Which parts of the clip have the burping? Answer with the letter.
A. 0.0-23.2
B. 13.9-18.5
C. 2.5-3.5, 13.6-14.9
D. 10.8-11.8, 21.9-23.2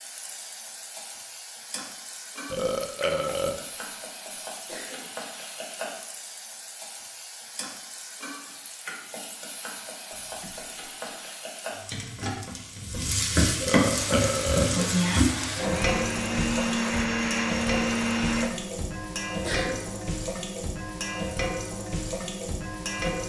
C.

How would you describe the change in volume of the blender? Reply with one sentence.
The volume of the blender goes up.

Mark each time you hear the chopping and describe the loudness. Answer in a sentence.
The chopping can't be heard in this clip.